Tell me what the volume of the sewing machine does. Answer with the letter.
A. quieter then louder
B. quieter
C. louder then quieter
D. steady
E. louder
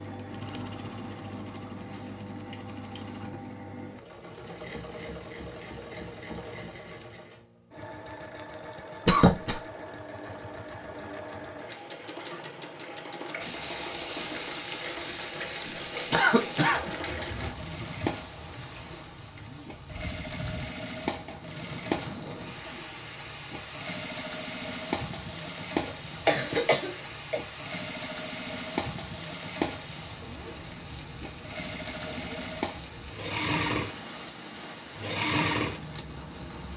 E.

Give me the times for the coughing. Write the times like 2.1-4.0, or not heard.
9.1-9.6, 16.1-17.2, 26.1-27.4.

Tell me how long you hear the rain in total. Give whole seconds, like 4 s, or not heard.
23 s.